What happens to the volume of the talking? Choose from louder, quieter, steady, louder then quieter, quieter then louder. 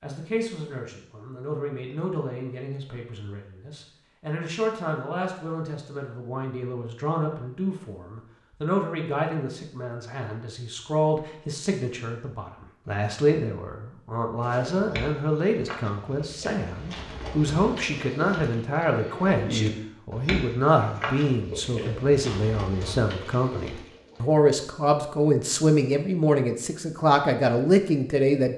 louder.